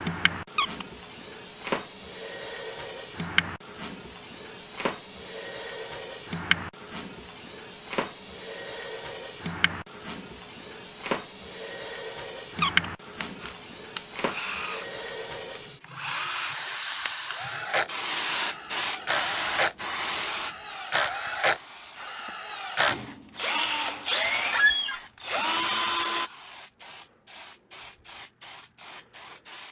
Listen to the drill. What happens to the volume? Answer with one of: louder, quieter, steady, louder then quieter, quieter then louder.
louder.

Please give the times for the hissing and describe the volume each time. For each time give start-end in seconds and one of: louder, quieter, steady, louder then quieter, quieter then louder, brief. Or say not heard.
0.0-29.6 quieter.